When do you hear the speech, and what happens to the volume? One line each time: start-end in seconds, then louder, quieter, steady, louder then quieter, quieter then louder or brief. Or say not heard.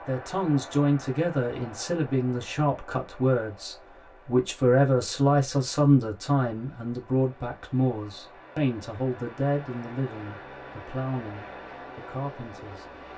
0.0-12.8 quieter.